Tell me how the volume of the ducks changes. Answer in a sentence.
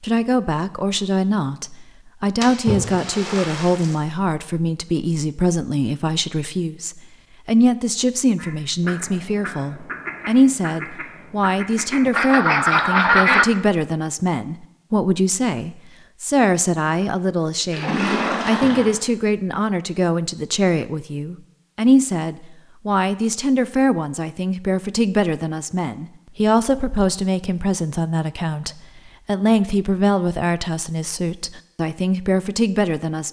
The loudness of the ducks goes up.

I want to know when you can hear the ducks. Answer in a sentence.
You can hear the ducks from 8.3 to 13.4 s.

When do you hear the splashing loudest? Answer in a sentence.
The volume of the splashing peaks at 18 seconds.